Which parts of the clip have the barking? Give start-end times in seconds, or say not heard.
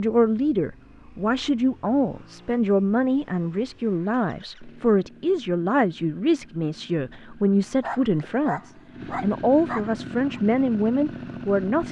7.8-10.4.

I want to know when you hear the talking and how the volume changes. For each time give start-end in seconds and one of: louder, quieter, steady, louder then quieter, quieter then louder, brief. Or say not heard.
0.0-11.8 steady.